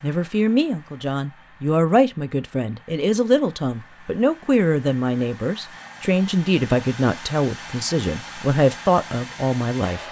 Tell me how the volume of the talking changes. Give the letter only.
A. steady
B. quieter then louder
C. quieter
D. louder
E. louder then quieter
A.